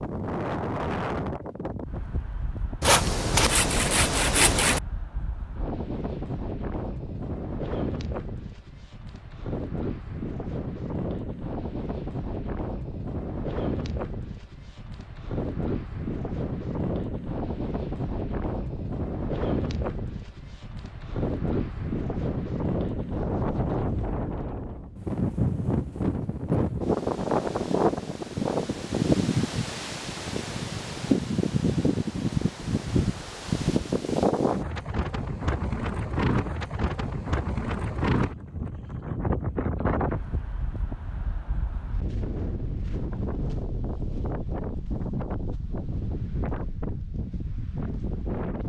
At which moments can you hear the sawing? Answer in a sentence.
You can hear the sawing from 2.8 to 4.8 s.